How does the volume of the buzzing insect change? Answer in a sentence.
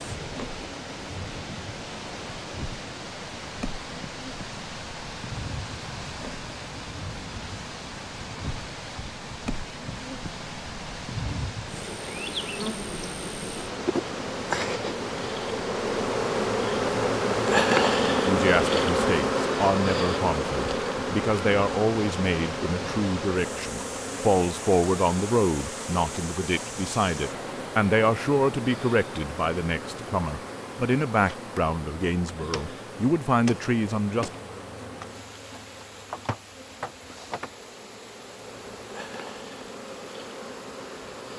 The loudness of the buzzing insect goes up, then down.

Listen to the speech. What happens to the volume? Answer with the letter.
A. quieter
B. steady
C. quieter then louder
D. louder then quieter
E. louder
B.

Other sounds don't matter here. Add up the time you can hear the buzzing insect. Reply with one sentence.
The buzzing insect can be heard for 41 seconds in total.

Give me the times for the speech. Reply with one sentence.
You can hear the speech from 18.2 to 34.4 s.